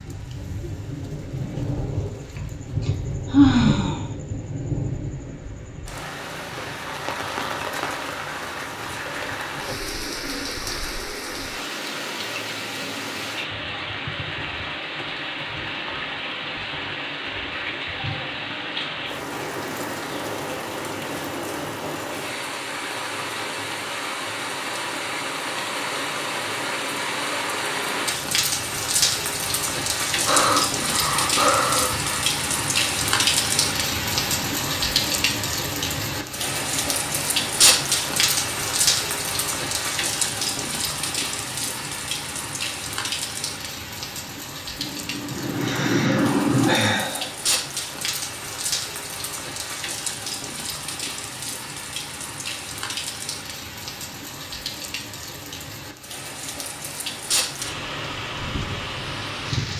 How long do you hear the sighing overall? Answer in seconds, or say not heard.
6 s.